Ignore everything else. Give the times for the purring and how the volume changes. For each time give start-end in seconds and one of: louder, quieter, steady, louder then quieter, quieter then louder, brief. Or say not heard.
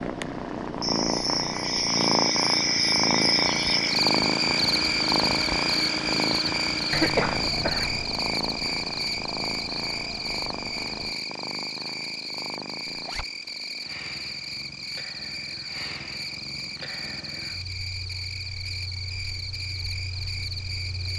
0.0-21.1 quieter.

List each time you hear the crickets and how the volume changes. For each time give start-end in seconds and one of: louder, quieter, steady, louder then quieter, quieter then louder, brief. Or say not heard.
0.0-21.1 quieter.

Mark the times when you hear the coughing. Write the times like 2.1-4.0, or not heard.
6.9-8.1.